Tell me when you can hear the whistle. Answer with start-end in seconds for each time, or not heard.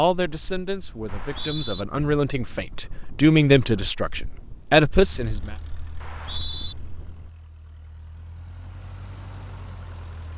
1.1-1.9, 6.0-6.8.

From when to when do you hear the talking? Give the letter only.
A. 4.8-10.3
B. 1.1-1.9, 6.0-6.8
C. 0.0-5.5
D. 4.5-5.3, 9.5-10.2
C.